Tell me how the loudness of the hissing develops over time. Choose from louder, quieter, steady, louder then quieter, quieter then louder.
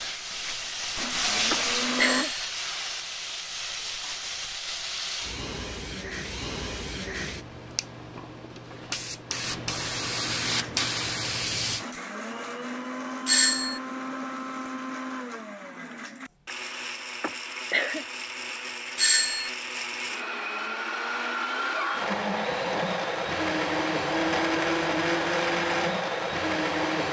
quieter then louder.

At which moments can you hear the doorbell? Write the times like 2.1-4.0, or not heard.
1.9-2.4, 13.2-13.8, 18.9-19.5.